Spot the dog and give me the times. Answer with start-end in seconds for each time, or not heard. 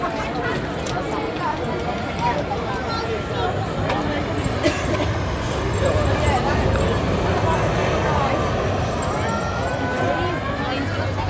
not heard.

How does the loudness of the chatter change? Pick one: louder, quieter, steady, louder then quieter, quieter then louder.
steady.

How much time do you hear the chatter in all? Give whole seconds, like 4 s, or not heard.
11 s.